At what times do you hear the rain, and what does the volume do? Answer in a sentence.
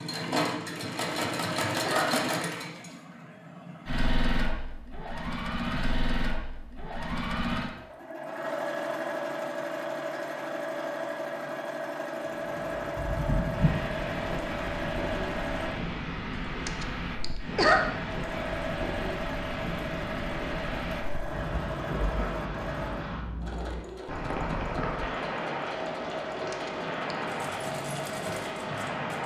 The rain can be heard from 12.2 to 29.2 s, at a steady volume.